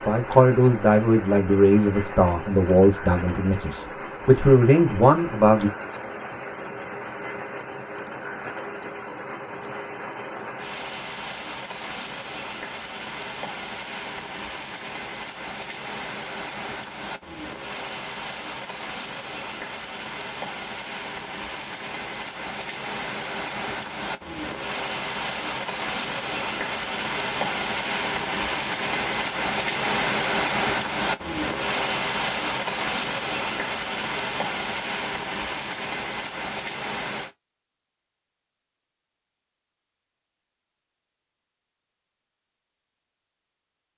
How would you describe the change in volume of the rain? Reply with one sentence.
The volume of the rain goes up.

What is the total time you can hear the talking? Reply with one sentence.
The talking can be heard for 6 seconds in total.